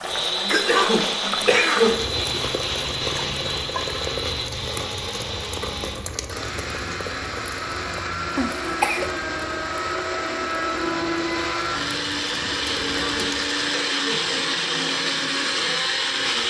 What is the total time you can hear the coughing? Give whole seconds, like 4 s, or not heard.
4 s.